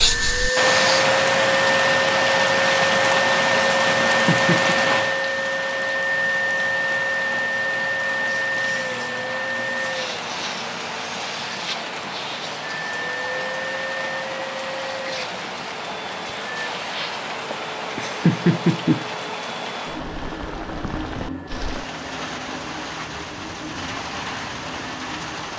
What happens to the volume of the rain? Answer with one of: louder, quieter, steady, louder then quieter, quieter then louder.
quieter.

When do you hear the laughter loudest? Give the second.
18 s.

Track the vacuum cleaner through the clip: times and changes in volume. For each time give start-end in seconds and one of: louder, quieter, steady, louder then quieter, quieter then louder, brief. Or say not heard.
0.0-25.5 quieter.